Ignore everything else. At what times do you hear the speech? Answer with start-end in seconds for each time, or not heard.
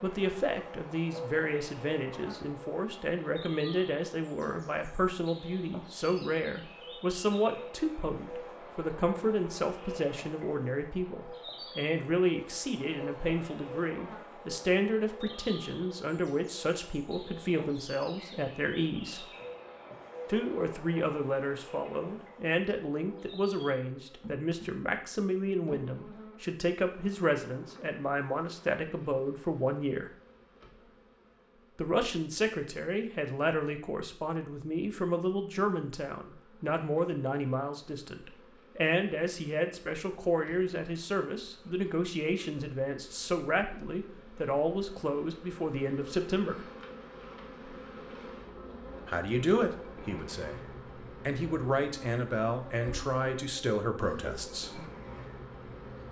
0.0-19.2, 20.2-30.1, 31.8-46.6, 49.0-54.9.